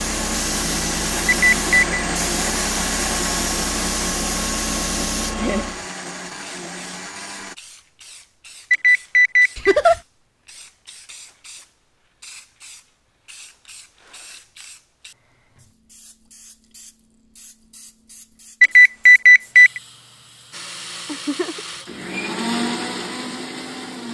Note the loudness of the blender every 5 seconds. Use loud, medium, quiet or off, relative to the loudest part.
loud, medium, off, off, loud.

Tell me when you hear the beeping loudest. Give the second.
19 s.